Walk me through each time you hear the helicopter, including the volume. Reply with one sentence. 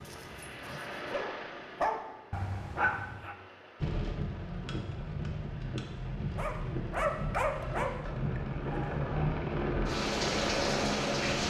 The helicopter can be heard from 0.0 to 11.4 s, getting quieter then louder.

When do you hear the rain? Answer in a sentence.
You can hear the rain from 3.8 to 11.4 s.